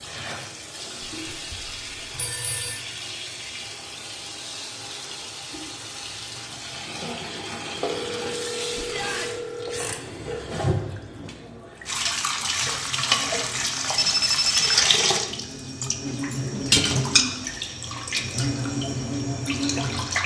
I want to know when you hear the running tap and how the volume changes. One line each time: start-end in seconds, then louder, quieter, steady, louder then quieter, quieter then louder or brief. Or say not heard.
0.0-20.2 louder.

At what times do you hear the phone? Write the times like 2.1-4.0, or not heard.
1.3-2.9, 7.8-10.4, 13.9-14.8.